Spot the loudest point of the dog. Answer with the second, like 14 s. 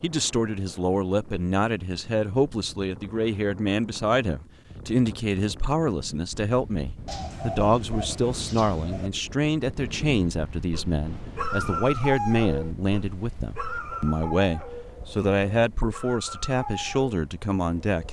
12 s.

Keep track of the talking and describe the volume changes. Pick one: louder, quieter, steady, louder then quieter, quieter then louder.
steady.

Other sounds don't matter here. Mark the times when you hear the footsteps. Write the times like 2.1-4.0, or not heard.
not heard.